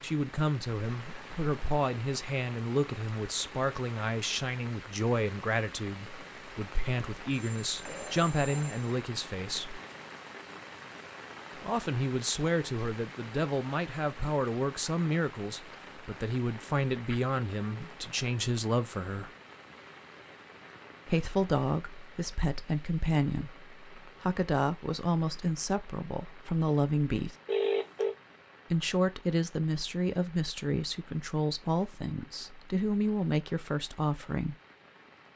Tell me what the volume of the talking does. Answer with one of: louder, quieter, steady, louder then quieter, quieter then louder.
steady.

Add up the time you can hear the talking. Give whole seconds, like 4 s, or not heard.
30 s.